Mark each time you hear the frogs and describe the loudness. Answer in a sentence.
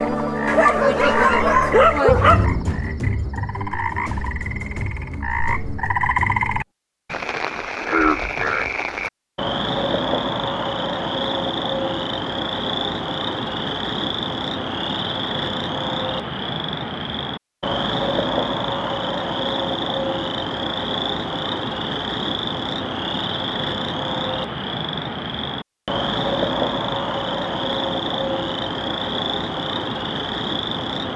You can hear the frogs from 0.0 to 31.1 s, at a steady volume.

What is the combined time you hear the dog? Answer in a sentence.
The dog can be heard for 2 seconds in total.